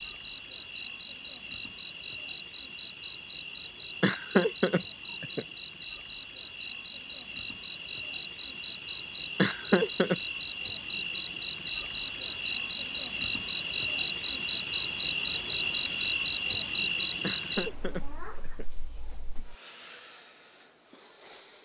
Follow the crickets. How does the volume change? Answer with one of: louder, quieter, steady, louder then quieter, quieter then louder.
louder then quieter.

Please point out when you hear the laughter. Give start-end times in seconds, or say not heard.
4.0-5.5, 9.3-10.2, 17.2-18.6.